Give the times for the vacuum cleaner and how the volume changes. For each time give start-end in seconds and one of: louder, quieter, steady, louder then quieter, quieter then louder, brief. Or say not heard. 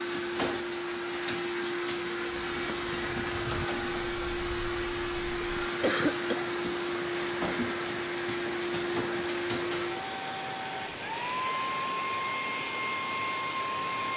0.0-14.1 steady.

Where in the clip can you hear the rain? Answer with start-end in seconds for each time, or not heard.
2.2-14.1.